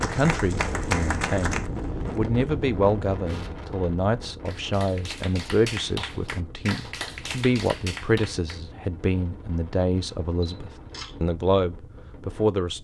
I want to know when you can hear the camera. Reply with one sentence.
The camera can be heard from 10.4 to 11.2 s.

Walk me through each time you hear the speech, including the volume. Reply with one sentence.
You can hear the speech from 0.0 to 12.8 s, at a steady volume.